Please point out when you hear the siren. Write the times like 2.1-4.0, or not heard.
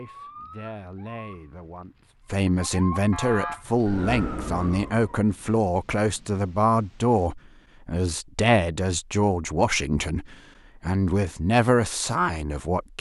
0.0-5.2.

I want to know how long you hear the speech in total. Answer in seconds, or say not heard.
13 s.